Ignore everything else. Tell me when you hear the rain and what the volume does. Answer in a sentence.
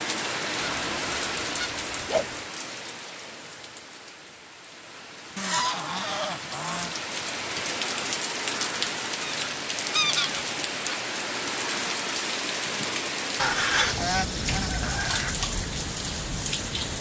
The rain can be heard from 0.0 to 16.9 s, getting quieter then louder.